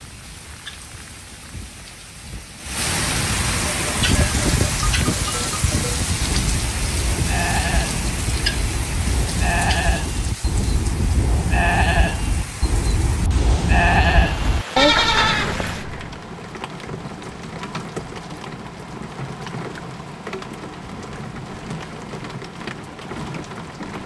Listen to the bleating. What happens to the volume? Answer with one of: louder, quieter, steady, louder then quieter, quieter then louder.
louder.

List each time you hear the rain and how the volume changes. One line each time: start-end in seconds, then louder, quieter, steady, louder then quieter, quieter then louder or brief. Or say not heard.
0.0-24.0 quieter.